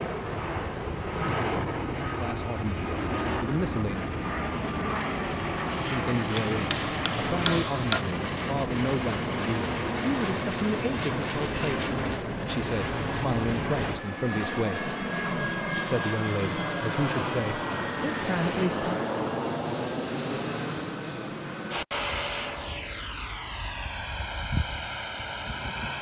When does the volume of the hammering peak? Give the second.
8 s.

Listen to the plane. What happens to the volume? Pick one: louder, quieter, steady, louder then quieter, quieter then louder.
steady.